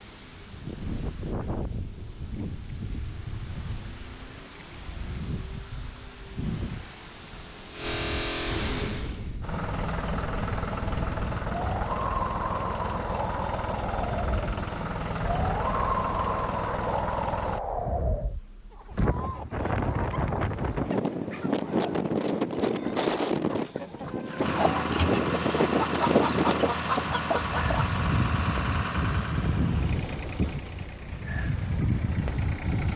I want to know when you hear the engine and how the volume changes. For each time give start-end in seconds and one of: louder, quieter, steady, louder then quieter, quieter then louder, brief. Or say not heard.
0.0-17.6 louder
24.4-32.9 quieter.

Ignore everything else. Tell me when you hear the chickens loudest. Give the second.
26 s.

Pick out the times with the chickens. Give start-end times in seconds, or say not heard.
18.7-27.9.